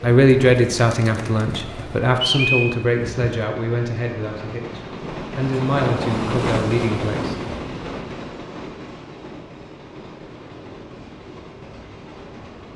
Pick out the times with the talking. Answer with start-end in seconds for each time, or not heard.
0.0-7.3.